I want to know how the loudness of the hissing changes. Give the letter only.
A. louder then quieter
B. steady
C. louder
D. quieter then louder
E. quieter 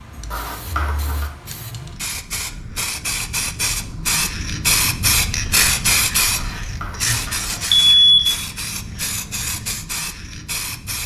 A.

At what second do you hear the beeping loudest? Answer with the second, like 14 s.
8 s.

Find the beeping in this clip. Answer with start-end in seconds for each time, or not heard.
0.3-1.2, 6.3-8.3.